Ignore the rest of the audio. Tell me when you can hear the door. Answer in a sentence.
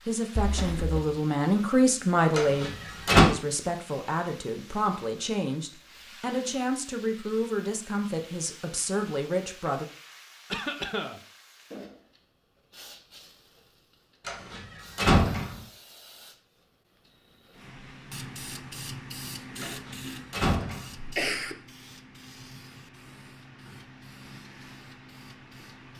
You can hear the door from 2.4 to 3.2 s, from 14.2 to 15.6 s and from 19.6 to 20.9 s.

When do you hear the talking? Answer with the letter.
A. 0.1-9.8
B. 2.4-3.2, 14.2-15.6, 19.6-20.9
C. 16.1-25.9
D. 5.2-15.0
A.